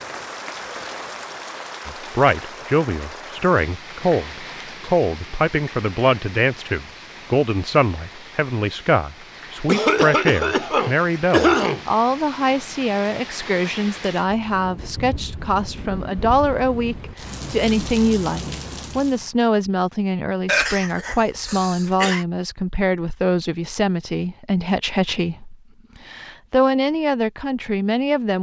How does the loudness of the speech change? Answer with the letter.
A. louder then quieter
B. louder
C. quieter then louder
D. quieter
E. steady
E.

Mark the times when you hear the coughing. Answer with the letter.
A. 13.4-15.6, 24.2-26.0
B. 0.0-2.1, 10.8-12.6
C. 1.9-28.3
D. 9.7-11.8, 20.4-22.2
D.